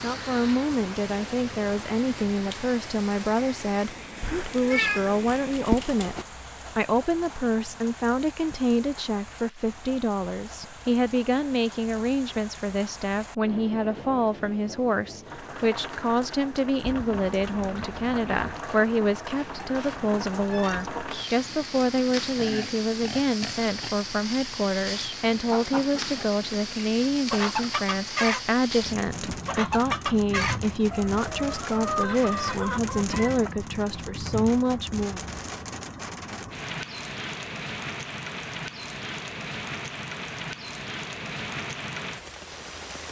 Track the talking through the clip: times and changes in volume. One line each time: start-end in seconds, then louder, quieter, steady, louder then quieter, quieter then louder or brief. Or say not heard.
0.0-6.2 steady
6.8-35.2 steady.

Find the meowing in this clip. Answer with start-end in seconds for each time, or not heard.
4.2-6.2, 19.4-20.9, 32.0-33.7.